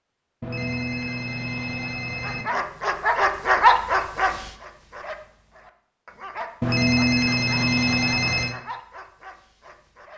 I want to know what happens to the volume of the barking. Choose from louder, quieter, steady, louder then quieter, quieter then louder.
quieter.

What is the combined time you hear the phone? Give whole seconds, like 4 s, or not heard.
4 s.